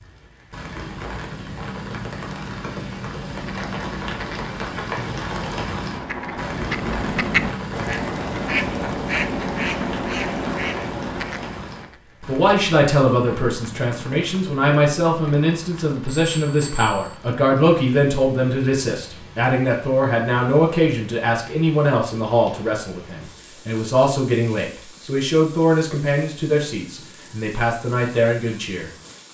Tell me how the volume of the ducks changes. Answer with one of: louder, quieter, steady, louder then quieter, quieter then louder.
louder.